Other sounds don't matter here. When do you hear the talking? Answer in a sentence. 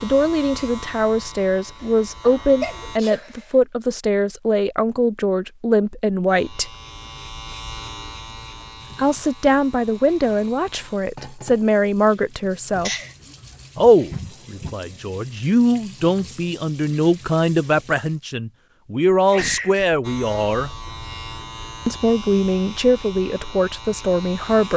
The talking can be heard from 0.0 to 6.7 s, from 8.9 to 12.9 s, from 13.8 to 20.7 s and from 21.9 to 24.7 s.